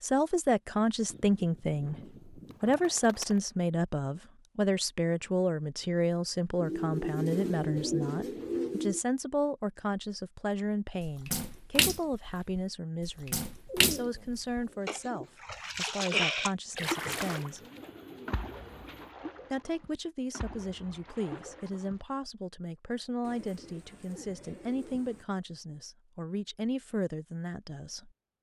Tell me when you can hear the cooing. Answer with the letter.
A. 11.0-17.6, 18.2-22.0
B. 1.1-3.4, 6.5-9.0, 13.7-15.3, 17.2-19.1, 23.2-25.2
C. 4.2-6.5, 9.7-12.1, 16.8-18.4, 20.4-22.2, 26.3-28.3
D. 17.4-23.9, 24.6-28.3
B.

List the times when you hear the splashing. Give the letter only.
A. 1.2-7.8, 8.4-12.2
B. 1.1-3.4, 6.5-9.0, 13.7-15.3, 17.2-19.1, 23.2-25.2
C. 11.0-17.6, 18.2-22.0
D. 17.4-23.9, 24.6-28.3
C.